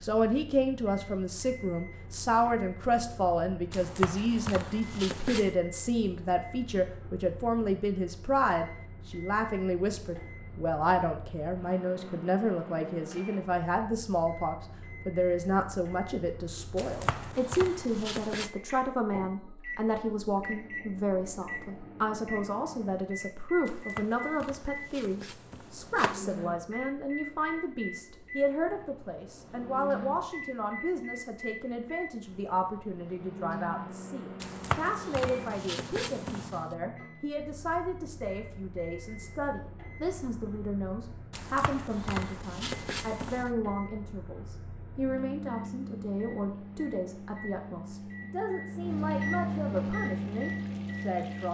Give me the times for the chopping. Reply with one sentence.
You can hear the chopping from 3.7 to 5.5 s, from 16.8 to 18.5 s, from 23.6 to 26.2 s, from 34.4 to 36.7 s and from 41.3 to 43.5 s.